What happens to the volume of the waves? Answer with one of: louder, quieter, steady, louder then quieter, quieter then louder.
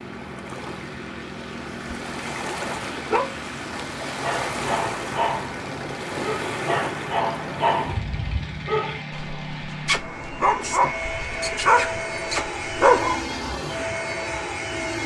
louder.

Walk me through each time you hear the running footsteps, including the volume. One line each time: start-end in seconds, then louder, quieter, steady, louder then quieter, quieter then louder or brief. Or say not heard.
not heard.